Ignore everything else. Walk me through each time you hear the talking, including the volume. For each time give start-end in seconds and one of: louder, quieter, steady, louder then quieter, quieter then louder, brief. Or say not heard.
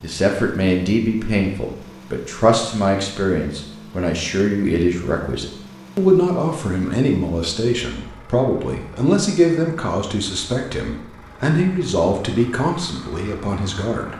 0.0-14.1 steady.